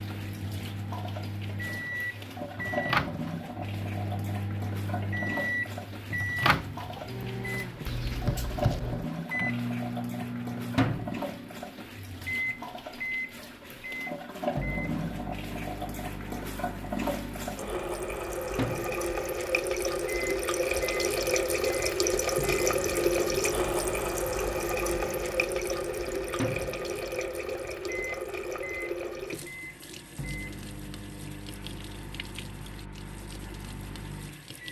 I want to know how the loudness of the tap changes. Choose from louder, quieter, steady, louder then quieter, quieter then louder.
louder then quieter.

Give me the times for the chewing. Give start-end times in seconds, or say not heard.
not heard.